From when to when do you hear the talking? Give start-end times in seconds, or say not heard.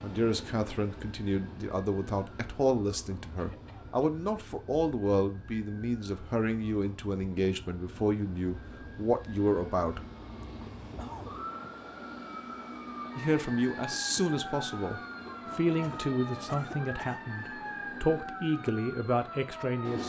0.0-10.0, 13.2-20.0.